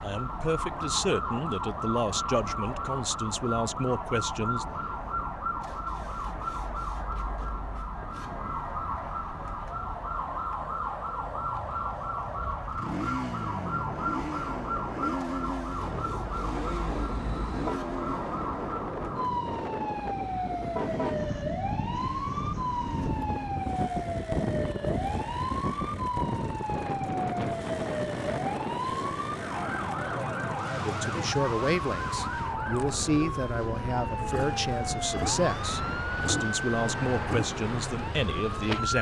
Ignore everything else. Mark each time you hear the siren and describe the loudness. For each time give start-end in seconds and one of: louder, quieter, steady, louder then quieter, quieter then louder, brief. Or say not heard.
0.0-38.9 steady.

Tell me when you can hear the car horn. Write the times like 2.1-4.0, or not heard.
16.9-17.8, 20.1-21.3.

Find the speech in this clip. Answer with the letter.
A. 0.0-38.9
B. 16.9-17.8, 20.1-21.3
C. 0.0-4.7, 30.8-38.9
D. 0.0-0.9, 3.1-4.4
C.